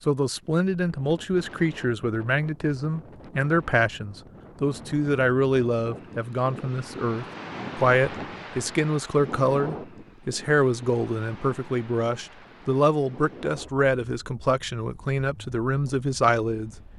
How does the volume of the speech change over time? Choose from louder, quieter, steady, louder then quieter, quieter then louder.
steady.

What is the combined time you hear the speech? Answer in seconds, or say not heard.
17 s.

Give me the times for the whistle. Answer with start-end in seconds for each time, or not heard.
not heard.